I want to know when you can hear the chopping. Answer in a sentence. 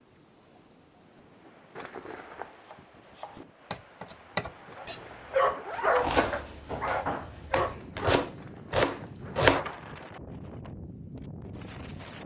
You can hear the chopping from 2.7 to 9.6 s.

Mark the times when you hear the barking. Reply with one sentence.
You can hear the barking from 4.8 to 8.3 s.